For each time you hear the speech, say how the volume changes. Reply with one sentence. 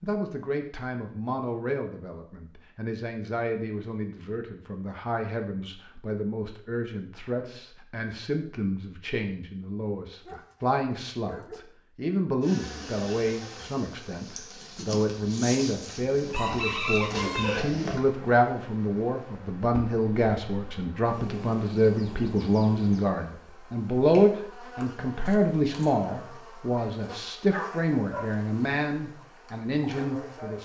The speech can be heard from 0.0 to 30.5 s, getting louder.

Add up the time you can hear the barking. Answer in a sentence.
The barking can be heard for 2 seconds in total.